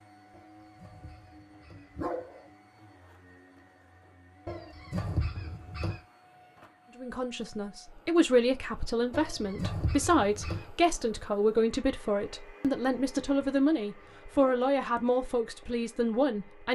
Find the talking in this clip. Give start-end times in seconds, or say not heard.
7.0-16.7.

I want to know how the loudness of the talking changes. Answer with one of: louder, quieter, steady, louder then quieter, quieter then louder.
steady.